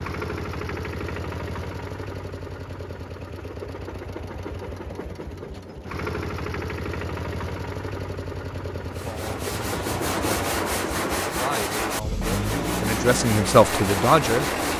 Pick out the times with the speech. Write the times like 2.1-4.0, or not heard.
8.9-14.5.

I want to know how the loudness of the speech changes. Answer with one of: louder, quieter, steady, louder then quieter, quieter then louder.
louder.